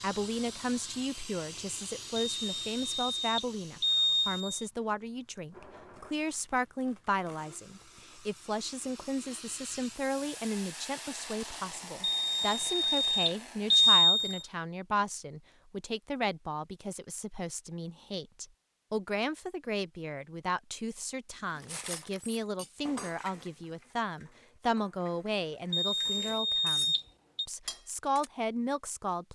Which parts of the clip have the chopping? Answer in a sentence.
You can't hear the chopping here.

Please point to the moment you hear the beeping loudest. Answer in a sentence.
The loudest moment of the beeping is at 14 seconds.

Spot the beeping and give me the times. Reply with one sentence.
The beeping can be heard from 2.4 to 4.7 s, from 12.0 to 14.4 s and from 25.7 to 27.4 s.